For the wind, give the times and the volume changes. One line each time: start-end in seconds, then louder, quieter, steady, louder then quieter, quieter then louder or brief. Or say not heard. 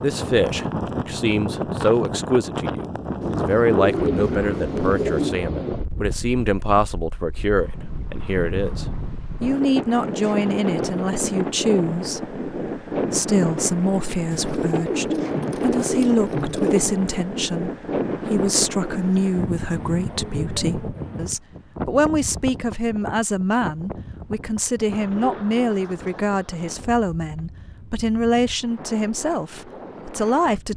0.0-30.7 quieter.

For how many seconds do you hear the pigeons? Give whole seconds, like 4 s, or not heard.
6 s.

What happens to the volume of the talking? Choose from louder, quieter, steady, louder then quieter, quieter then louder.
steady.